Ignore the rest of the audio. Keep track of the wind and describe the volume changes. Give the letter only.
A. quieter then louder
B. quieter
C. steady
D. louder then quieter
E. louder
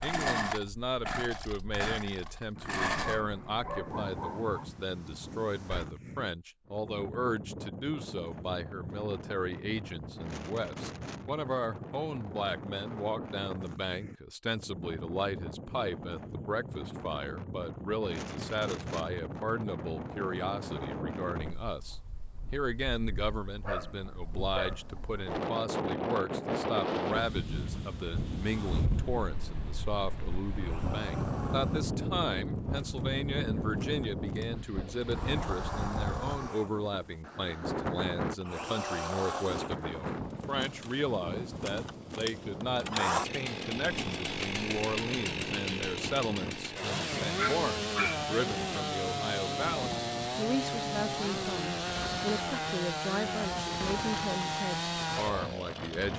D.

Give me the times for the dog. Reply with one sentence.
You can hear the dog from 2.5 to 4.7 s, from 23.6 to 25.2 s and from 47.4 to 48.3 s.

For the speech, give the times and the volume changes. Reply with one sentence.
You can hear the speech from 0.0 to 56.1 s, at a steady volume.